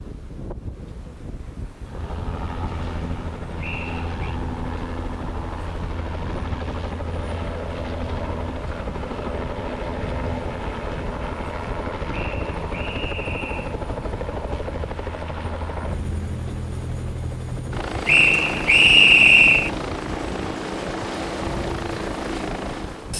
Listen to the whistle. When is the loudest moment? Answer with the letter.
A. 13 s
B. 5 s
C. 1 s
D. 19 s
D.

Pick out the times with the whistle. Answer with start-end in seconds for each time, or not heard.
3.6-4.4, 12.1-13.8, 18.1-19.7.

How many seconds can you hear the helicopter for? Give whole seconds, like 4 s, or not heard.
21 s.